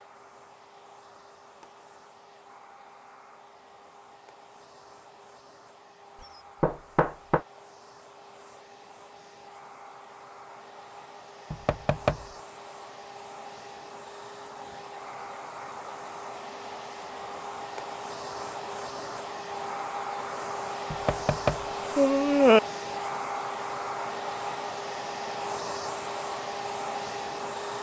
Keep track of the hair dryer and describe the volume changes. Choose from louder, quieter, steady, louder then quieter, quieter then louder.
louder.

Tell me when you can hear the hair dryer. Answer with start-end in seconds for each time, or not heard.
0.0-27.7.